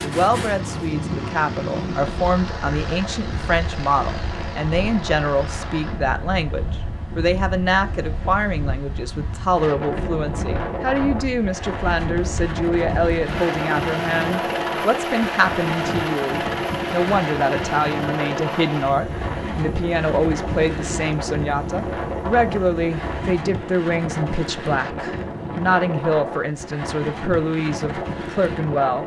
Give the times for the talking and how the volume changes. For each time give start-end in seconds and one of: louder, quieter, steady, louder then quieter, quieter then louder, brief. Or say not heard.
0.0-29.0 steady.